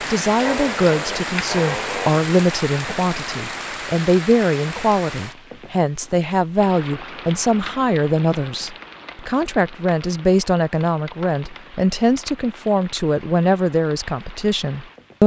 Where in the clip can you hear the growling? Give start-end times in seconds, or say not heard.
0.4-2.2.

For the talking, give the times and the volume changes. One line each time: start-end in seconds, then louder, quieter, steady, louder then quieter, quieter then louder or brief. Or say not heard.
0.1-15.2 steady.